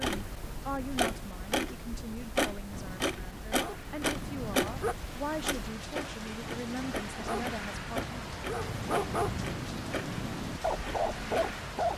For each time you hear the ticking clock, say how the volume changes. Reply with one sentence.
The ticking clock can be heard from 0.0 to 11.6 s, getting quieter.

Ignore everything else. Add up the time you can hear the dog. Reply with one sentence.
The dog can be heard for 8 seconds in total.